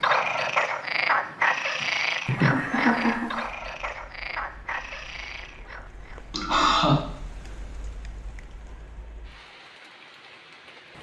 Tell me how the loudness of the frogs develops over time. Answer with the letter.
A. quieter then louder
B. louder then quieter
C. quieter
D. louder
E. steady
C.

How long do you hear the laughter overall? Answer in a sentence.
The laughter can be heard for 2 seconds in total.